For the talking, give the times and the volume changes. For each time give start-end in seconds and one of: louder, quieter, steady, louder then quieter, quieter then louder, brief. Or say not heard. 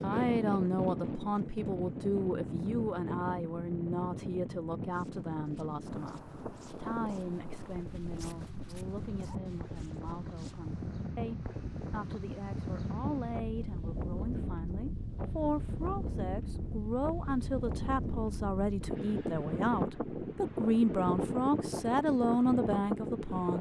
0.0-23.5 quieter then louder.